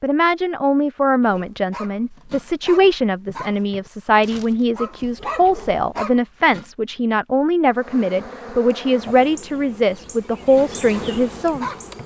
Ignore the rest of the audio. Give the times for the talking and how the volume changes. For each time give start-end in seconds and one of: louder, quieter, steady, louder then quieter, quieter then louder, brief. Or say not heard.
0.0-12.0 steady.